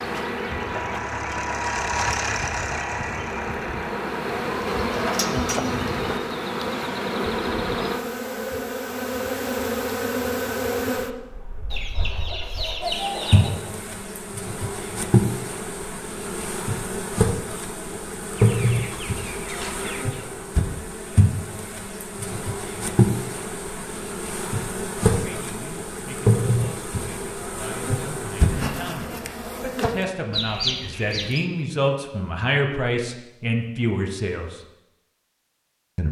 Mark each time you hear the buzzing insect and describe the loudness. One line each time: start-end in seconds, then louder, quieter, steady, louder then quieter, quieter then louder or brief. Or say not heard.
0.0-30.1 steady.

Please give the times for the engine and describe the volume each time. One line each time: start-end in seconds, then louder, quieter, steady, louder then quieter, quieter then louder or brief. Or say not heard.
0.0-4.5 louder then quieter.